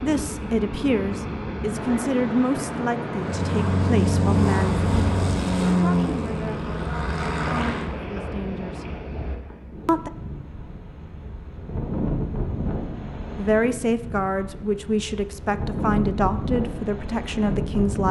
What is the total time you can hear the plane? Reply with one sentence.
The plane can be heard for 5 seconds in total.